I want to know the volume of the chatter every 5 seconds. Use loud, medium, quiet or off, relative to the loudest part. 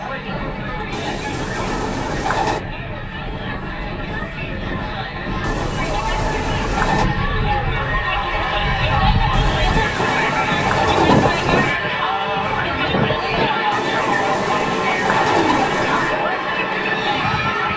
medium, loud, loud, loud.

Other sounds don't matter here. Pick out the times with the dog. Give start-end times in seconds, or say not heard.
not heard.